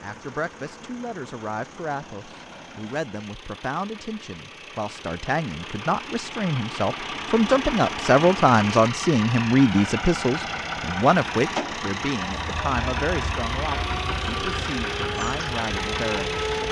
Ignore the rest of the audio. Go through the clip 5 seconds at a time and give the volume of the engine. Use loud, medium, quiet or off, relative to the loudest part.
quiet, loud, loud, loud.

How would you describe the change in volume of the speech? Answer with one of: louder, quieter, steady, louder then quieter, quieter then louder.
louder then quieter.